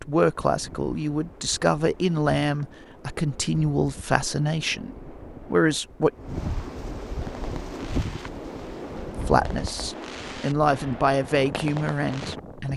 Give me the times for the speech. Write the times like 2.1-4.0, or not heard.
0.0-6.1, 9.2-12.7.